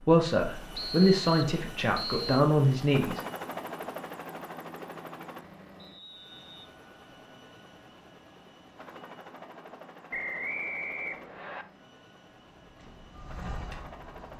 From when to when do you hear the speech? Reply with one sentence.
The speech can be heard from 0.1 to 3.2 s.